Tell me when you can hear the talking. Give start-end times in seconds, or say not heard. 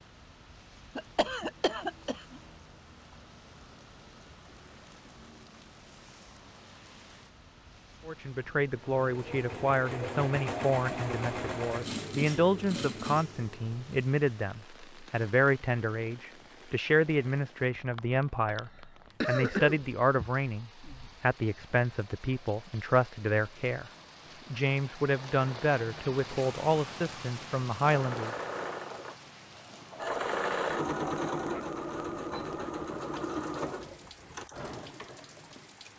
8.1-23.9, 24.5-28.4.